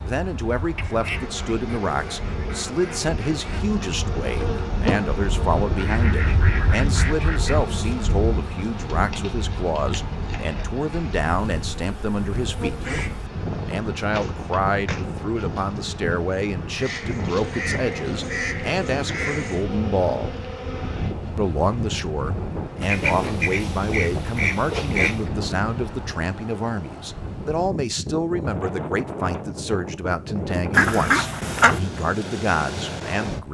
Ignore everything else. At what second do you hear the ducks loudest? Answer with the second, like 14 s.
31 s.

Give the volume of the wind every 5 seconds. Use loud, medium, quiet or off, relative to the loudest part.
medium, loud, loud, loud, loud, loud, loud.